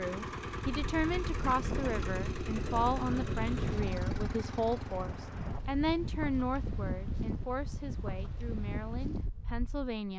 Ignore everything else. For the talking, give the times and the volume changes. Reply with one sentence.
The talking can be heard from 0.0 to 10.1 s, getting quieter.